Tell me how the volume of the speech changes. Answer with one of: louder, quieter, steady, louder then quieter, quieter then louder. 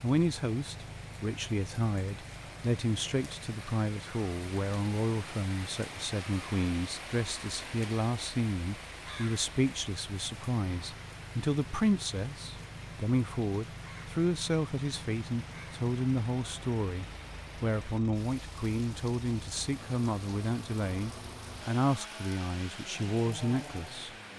steady.